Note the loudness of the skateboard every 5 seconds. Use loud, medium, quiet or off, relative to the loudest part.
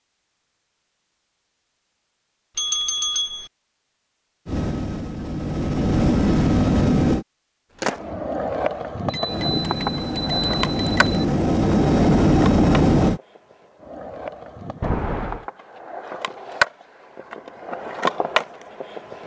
off, loud, medium, loud.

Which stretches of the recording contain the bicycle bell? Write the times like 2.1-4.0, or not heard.
2.5-3.5, 9.1-11.2, 14.8-15.4.